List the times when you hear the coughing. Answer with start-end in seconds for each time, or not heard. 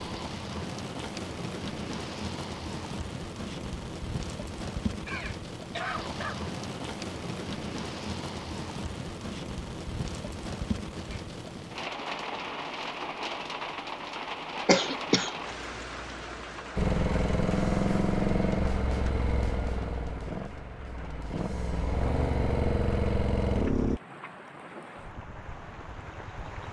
5.0-6.4, 14.7-15.3.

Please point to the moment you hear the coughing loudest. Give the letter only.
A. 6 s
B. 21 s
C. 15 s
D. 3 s
C.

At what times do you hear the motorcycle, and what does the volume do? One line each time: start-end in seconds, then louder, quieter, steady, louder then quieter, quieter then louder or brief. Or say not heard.
16.8-24.0 quieter then louder.